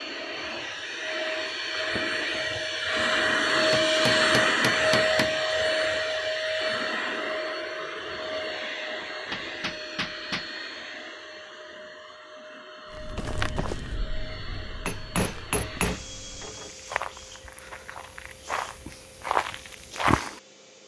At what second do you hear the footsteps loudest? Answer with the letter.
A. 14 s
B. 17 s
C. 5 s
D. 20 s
D.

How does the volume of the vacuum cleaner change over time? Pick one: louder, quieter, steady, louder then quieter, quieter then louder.
quieter.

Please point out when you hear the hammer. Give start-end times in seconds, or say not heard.
3.7-5.3, 9.0-10.4, 14.8-16.7.